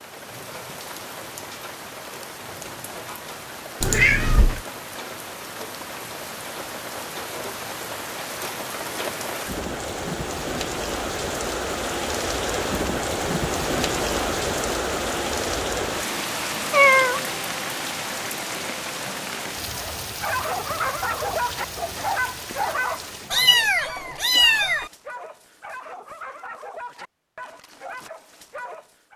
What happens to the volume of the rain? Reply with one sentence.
The loudness of the rain goes up, then down.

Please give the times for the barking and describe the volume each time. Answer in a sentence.
You can hear the barking from 19.7 to 29.1 s, getting quieter.